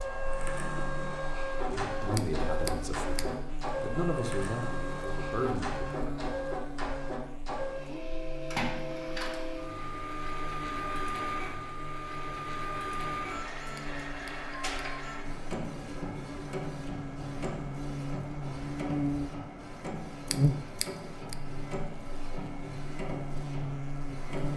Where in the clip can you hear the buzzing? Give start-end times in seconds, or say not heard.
0.0-24.5.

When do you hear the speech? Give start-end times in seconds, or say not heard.
1.6-6.2.